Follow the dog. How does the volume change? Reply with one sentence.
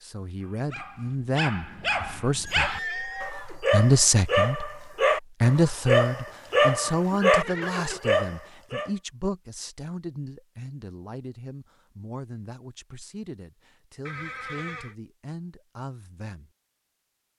The volume of the dog goes up.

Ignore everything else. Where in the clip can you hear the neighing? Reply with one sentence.
You can hear the neighing from 2.4 to 3.6 s, from 6.7 to 8.1 s and from 14.1 to 14.9 s.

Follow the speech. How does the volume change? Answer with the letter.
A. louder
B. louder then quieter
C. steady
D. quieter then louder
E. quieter
B.